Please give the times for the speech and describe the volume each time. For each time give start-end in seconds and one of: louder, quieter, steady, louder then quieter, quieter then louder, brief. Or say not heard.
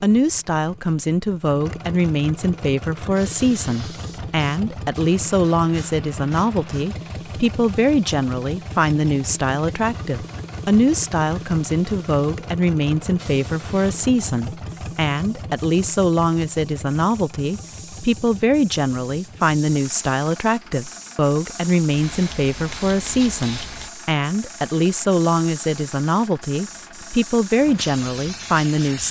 0.0-29.0 steady.